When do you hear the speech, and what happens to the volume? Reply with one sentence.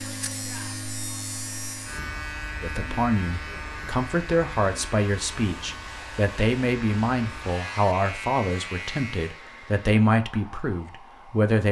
The speech can be heard from 2.6 to 11.6 s, at a steady volume.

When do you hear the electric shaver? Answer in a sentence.
You can hear the electric shaver from 0.0 to 9.4 s.